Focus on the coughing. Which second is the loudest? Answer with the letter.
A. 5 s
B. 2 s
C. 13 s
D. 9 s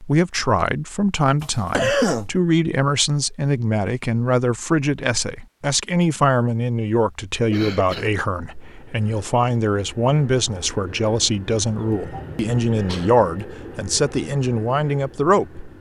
B.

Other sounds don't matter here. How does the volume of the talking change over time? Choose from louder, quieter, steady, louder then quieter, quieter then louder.
steady.